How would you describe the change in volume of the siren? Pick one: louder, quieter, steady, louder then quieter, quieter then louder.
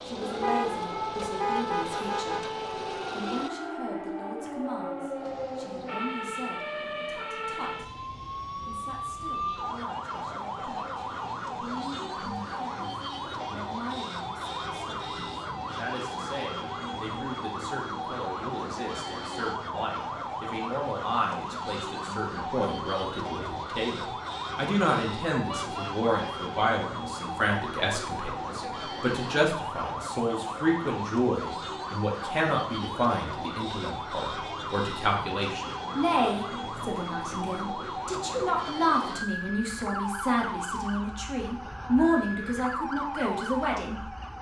steady.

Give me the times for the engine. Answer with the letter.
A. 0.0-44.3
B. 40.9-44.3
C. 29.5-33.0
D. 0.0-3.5
D.